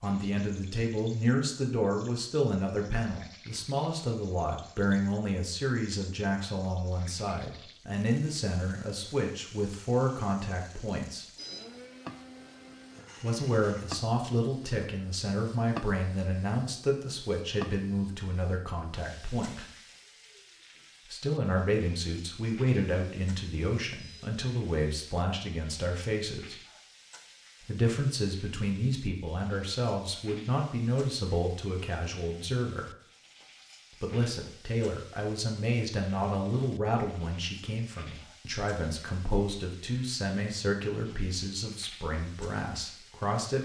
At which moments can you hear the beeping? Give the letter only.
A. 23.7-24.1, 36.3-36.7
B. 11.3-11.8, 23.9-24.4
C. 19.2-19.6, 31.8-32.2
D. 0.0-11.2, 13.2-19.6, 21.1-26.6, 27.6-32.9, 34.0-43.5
B.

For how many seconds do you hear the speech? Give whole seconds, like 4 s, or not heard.
38 s.